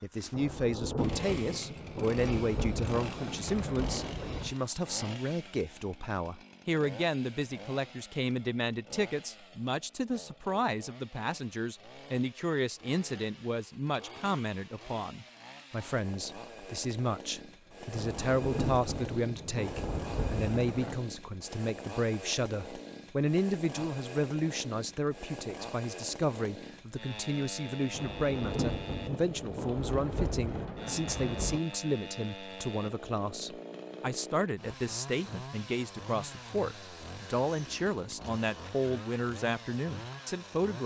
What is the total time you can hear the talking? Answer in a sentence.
The talking can be heard for 41 seconds in total.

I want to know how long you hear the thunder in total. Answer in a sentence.
The thunder can be heard for 11 seconds in total.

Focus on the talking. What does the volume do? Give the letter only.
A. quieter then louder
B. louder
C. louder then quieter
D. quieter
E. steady
E.